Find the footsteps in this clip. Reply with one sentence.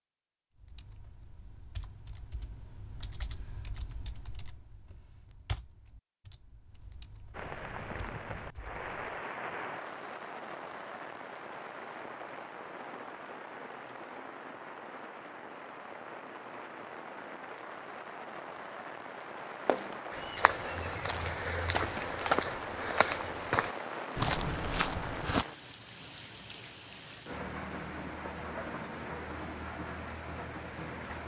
You can hear the footsteps from 19.6 to 25.4 s.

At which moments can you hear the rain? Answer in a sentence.
You can hear the rain from 7.3 to 31.2 s.